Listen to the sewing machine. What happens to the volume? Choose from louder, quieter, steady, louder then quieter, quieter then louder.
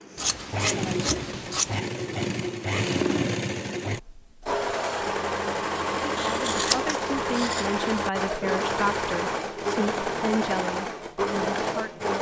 steady.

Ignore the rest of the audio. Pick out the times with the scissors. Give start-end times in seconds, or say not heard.
0.1-1.8, 6.2-7.7.